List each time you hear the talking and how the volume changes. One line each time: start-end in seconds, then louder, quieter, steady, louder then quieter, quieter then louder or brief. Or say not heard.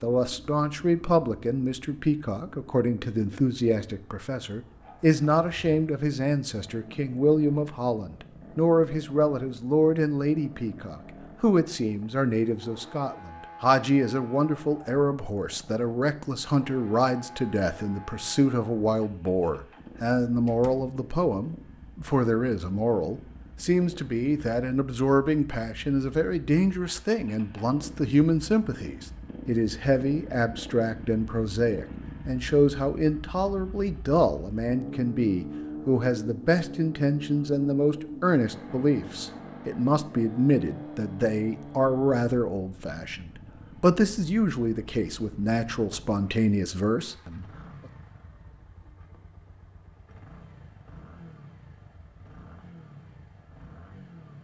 0.0-47.5 steady.